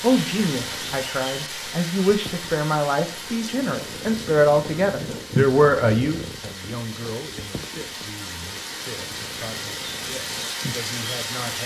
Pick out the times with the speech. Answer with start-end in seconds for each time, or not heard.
0.0-11.6.